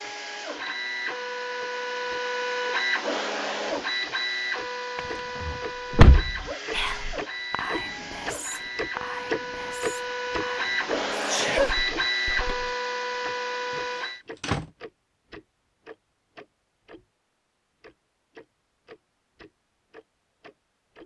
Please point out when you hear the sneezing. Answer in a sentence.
The sneezing can be heard from 11.2 to 11.8 s.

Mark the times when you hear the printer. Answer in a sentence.
You can hear the printer from 0.0 to 14.2 s.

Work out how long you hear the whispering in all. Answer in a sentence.
The whispering can be heard for 6 seconds in total.